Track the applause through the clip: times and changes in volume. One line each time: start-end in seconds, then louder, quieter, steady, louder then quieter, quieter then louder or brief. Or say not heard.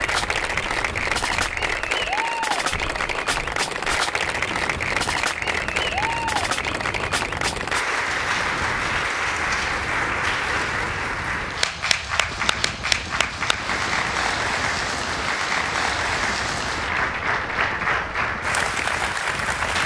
0.0-19.8 steady.